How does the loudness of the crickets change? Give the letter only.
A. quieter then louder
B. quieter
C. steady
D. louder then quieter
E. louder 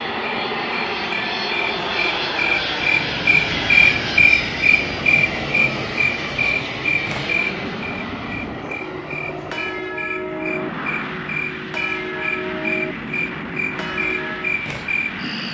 B.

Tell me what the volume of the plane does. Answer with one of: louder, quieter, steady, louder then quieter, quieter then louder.
quieter.